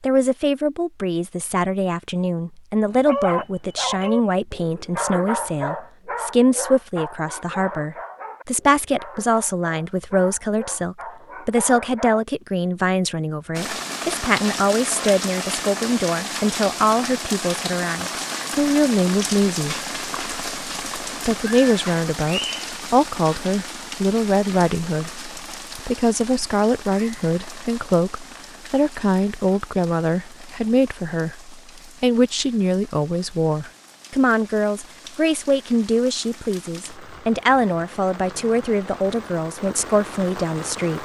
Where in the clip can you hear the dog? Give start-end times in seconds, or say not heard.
2.9-12.2.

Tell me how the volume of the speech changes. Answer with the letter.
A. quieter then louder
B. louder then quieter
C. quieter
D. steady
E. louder
D.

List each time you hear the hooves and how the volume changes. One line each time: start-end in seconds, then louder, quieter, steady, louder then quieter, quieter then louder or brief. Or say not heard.
not heard.